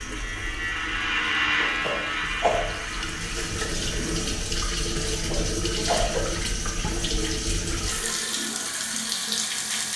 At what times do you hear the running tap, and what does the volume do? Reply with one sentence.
You can hear the running tap from 0.0 to 9.9 s, getting louder.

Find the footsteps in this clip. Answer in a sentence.
The footsteps can't be heard in this clip.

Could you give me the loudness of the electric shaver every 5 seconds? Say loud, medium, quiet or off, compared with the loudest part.
loud, off.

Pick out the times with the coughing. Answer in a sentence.
The coughing can be heard from 1.6 to 2.6 s and from 5.0 to 6.2 s.